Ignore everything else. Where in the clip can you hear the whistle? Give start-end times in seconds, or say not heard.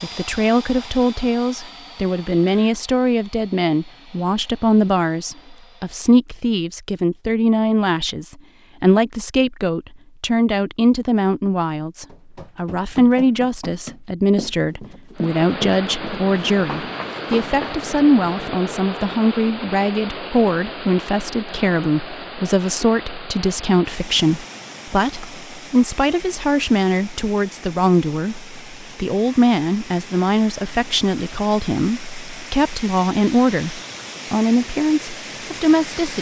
not heard.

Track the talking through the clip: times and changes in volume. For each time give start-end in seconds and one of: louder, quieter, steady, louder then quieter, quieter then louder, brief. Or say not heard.
0.0-36.1 steady.